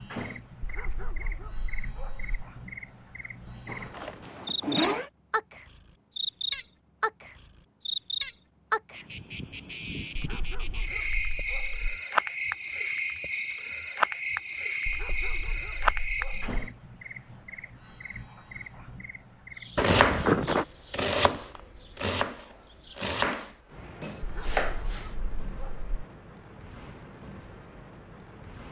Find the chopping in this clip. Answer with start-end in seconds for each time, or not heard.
19.6-25.1.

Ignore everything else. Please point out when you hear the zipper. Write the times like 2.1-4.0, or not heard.
3.6-5.1, 19.8-20.6.